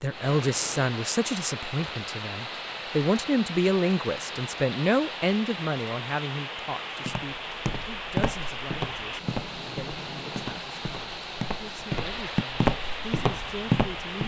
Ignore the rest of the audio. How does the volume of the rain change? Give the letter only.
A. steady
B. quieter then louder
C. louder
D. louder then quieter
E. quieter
A.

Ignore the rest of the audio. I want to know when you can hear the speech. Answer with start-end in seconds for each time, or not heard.
0.0-14.2.